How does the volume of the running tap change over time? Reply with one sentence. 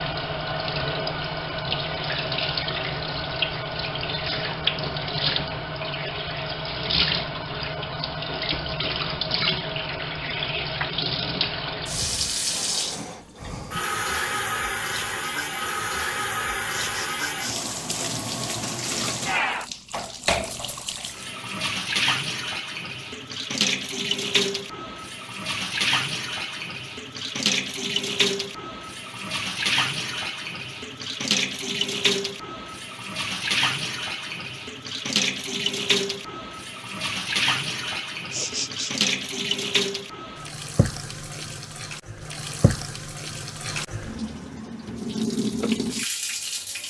The loudness of the running tap stays about the same.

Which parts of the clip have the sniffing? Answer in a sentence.
The sniffing can be heard from 16.7 to 17.6 s and from 38.3 to 39.1 s.